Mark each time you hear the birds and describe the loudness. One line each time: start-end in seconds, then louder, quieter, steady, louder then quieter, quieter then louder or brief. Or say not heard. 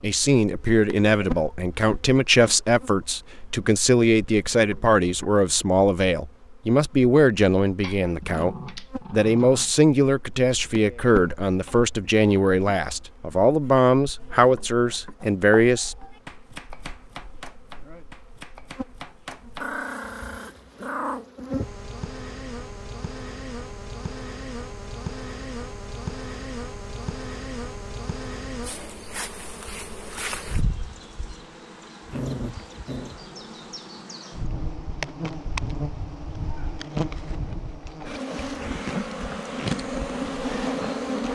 not heard.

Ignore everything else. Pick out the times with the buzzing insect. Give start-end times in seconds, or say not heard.
0.0-41.2.